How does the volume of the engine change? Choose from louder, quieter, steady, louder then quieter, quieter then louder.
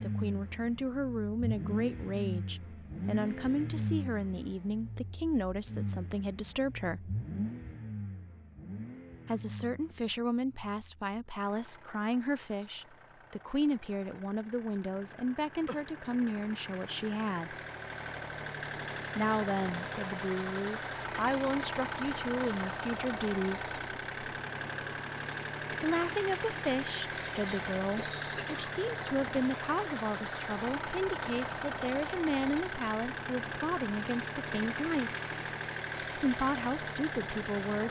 quieter then louder.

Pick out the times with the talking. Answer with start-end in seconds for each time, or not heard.
0.0-7.2, 9.2-17.6, 19.1-23.8, 25.8-35.1, 36.1-37.8.